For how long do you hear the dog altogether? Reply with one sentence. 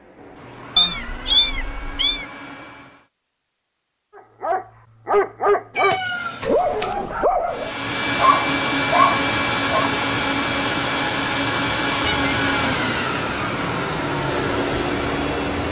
The dog can be heard for 6 seconds in total.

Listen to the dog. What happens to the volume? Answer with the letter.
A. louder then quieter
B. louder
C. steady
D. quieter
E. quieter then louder
C.